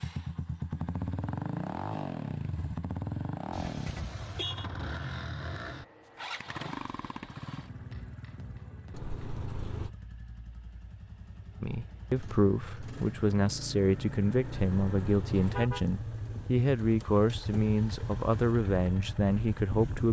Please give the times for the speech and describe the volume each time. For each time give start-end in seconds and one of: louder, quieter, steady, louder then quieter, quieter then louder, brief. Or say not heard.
11.6-20.0 steady.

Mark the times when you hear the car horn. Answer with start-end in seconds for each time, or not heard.
3.5-4.7, 8.9-9.9, 14.4-15.8.